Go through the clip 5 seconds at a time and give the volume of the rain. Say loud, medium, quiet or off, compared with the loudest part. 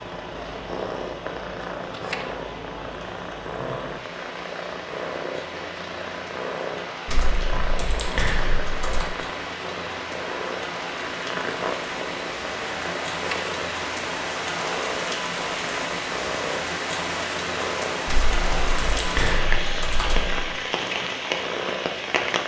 medium, medium, loud, loud, loud.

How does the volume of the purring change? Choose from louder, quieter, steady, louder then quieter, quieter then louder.
steady.